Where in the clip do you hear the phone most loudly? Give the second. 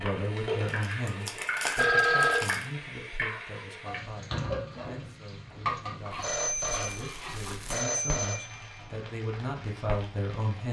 2 s.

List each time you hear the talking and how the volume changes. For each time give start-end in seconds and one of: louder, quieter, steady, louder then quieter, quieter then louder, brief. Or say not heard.
0.0-10.6 quieter then louder.